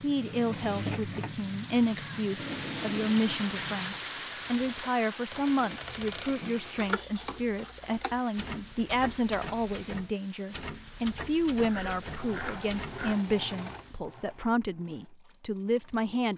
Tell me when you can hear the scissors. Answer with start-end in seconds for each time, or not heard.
0.8-1.4, 6.4-8.2, 11.7-13.2.